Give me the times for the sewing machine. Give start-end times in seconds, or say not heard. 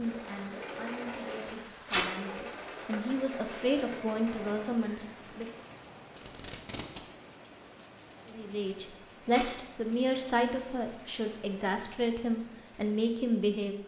0.0-5.9.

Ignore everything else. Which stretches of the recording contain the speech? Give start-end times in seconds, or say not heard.
0.0-5.5, 8.2-13.8.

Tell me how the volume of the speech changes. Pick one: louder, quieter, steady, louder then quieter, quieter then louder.
louder.